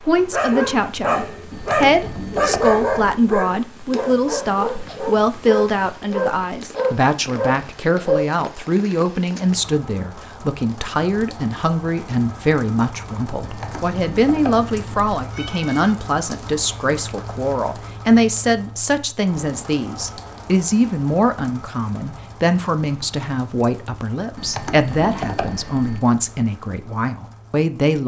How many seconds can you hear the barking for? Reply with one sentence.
You can hear the barking for 8 seconds altogether.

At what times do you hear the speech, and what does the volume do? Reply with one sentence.
The speech can be heard from 0.0 to 28.0 s, at a steady volume.